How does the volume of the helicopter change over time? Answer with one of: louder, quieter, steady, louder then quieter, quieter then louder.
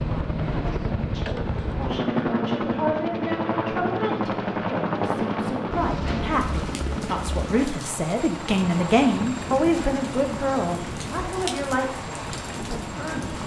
quieter.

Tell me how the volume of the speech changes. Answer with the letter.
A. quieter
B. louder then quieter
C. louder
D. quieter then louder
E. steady
B.